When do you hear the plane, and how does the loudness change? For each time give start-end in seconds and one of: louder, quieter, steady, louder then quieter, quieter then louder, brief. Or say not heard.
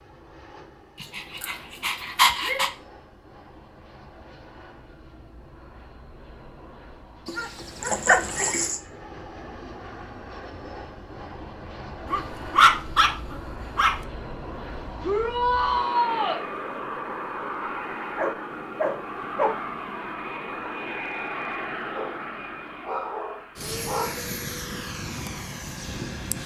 0.0-26.4 louder.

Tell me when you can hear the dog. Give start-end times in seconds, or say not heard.
1.0-2.7, 7.2-8.8, 12.1-14.0, 18.1-19.6, 21.9-24.2.